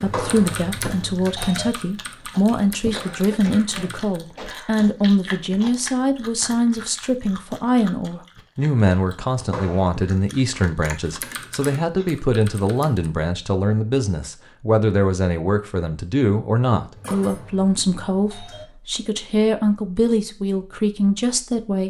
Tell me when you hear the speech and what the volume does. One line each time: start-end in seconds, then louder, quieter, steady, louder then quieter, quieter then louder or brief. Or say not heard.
0.0-21.8 steady.